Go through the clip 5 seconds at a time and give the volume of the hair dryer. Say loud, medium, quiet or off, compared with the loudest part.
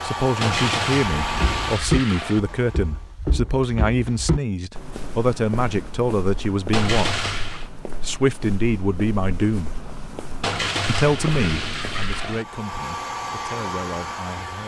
loud, off, loud.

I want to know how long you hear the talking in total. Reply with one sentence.
You can hear the talking for 13 seconds altogether.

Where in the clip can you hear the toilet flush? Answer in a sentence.
The toilet flush can be heard from 0.4 to 2.4 s, from 6.7 to 7.7 s and from 10.4 to 12.4 s.